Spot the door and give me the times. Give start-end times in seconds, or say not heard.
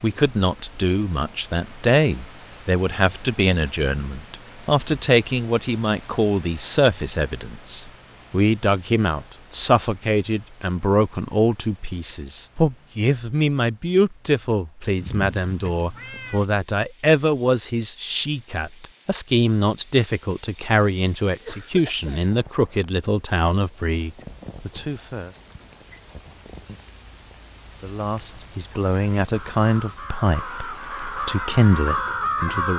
not heard.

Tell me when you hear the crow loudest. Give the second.
32 s.